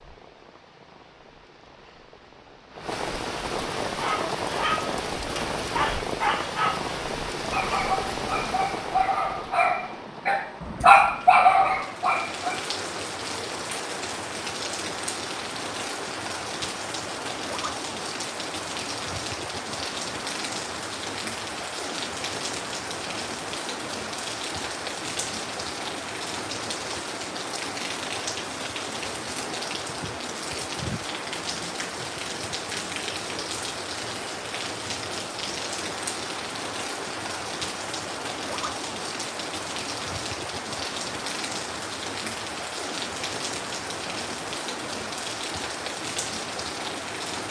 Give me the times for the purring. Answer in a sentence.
The purring can't be heard in this clip.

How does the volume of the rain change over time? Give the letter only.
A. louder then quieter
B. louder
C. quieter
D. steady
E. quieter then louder
D.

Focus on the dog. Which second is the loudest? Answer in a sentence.
The volume of the dog peaks at 11 seconds.